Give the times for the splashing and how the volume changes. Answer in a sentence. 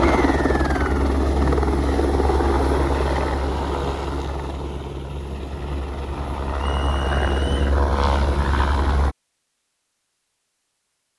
You can't hear the splashing here.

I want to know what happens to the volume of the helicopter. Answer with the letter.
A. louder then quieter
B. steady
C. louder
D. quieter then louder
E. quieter
D.